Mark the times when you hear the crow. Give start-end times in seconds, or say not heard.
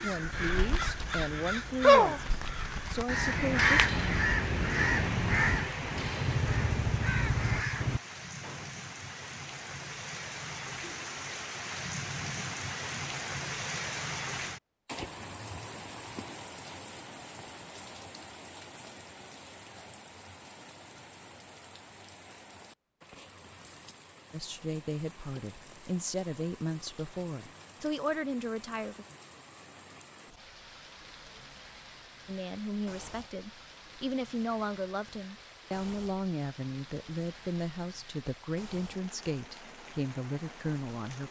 0.0-8.7.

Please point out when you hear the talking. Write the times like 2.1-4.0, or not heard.
0.0-3.9, 24.3-29.1, 32.2-41.2.